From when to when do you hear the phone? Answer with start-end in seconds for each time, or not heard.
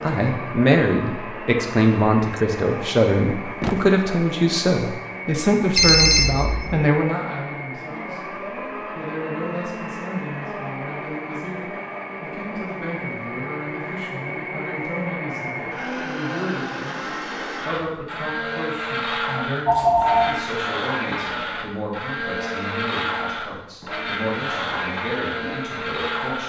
5.8-6.8, 19.6-20.4.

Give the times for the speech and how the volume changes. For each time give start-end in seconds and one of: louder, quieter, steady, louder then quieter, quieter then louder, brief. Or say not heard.
0.0-17.0 quieter
17.6-26.4 steady.